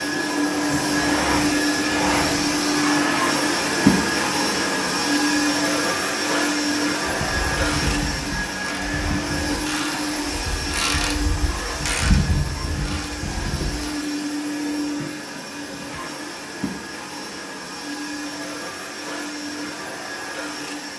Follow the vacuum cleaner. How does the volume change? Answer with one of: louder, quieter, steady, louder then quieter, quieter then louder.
quieter.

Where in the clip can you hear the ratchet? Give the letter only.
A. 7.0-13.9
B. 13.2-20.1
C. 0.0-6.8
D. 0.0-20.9
A.